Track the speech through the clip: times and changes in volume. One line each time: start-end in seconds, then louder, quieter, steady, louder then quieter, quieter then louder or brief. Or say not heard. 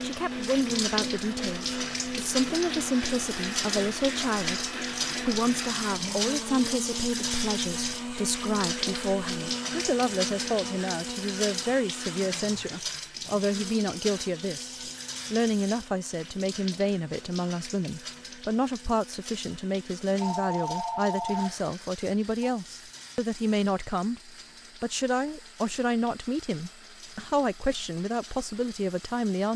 0.0-29.5 steady.